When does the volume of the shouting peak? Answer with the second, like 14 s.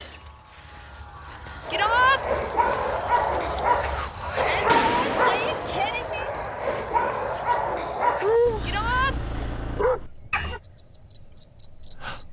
2 s.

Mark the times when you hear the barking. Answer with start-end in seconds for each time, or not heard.
1.6-10.6.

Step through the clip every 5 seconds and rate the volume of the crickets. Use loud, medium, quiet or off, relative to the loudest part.
loud, loud, medium.